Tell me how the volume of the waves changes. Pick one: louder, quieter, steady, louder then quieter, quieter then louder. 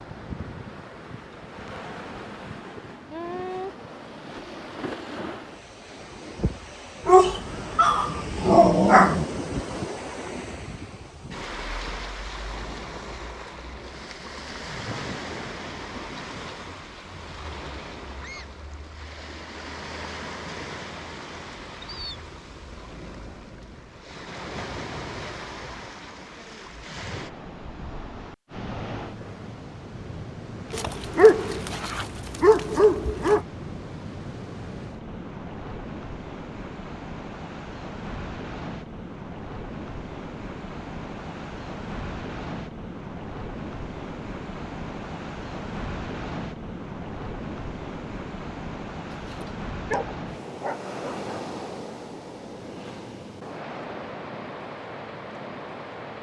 steady.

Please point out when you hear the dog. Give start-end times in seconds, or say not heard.
7.0-9.2, 30.7-33.4, 49.1-51.4.